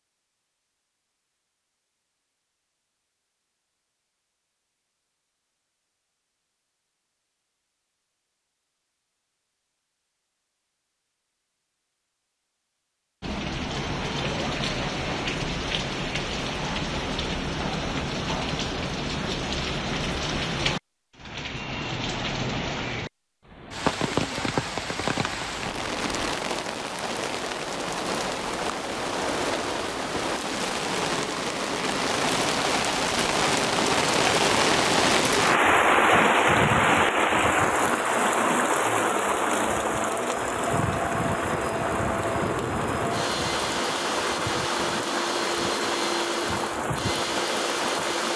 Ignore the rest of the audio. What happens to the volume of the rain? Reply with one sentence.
The volume of the rain goes up, then down.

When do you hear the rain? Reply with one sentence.
The rain can be heard from 13.2 to 48.3 s.